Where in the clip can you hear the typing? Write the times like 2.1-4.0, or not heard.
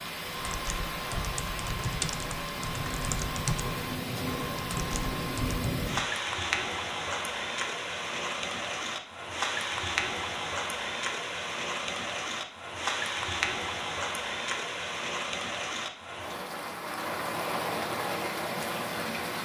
0.3-5.7.